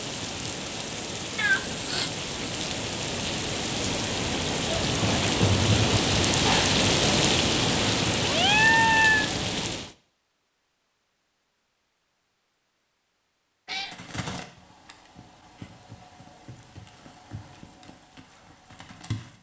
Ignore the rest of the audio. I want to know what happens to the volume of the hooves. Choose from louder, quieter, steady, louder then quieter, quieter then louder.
quieter.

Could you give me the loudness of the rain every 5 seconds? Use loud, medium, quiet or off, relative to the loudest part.
medium, loud, off, off.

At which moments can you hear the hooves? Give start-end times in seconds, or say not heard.
13.8-19.3.